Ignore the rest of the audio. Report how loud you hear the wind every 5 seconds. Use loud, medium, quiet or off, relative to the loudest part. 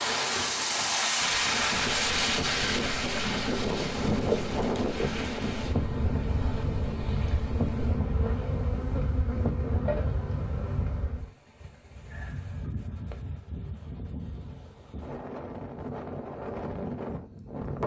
loud, medium, quiet, medium.